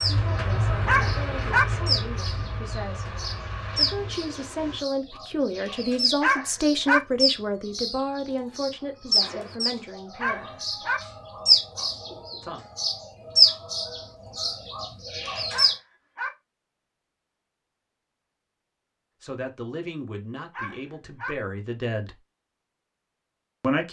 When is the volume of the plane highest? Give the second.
1 s.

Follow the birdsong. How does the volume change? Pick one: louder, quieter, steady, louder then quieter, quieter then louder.
louder.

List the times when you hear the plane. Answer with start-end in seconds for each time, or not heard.
0.0-4.8.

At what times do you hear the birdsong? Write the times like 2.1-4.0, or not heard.
0.0-15.8.